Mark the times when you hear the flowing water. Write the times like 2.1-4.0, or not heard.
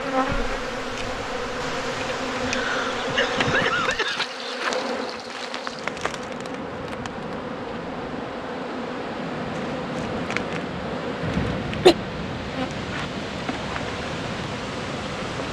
0.0-15.4.